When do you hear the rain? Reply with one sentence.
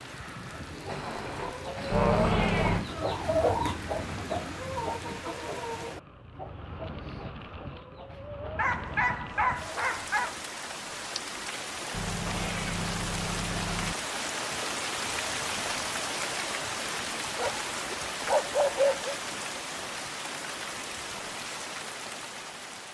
You can hear the rain from 0.0 to 22.8 s.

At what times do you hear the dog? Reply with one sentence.
You can hear the dog from 0.8 to 2.8 s, from 8.6 to 10.3 s and from 17.4 to 19.1 s.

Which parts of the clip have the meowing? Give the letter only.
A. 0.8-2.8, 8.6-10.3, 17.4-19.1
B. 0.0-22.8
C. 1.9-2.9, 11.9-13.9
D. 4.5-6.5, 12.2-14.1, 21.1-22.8
C.